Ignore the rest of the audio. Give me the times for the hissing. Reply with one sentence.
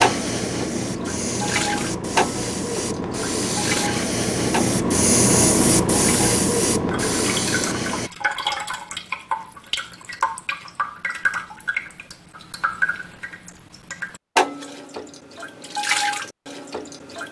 You can hear the hissing from 0.0 to 8.1 s.